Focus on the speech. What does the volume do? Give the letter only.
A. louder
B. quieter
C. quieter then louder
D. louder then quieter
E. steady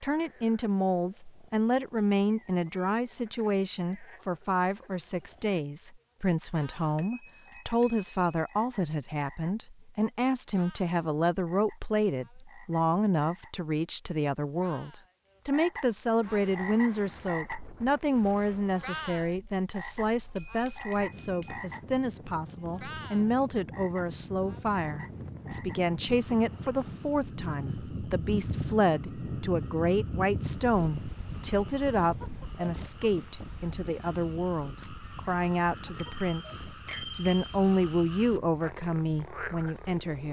E.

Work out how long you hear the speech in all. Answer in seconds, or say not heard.
40 s.